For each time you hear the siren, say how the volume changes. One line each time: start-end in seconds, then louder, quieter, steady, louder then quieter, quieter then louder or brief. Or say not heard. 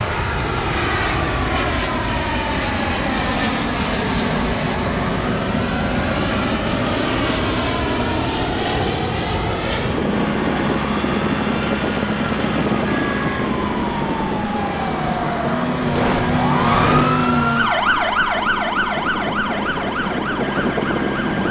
0.0-21.4 louder.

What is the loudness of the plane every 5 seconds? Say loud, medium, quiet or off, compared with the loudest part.
loud, loud, loud, medium, loud.